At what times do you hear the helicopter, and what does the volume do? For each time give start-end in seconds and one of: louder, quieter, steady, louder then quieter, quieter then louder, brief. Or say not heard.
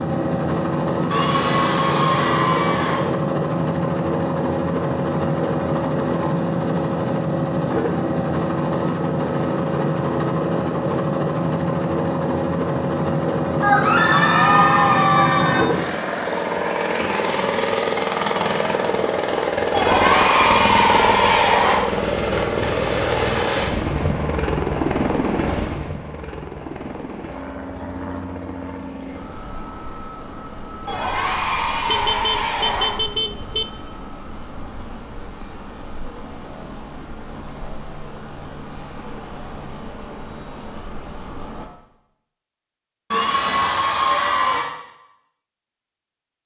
0.0-41.7 quieter.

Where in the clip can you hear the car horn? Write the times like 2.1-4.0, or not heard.
31.9-33.6.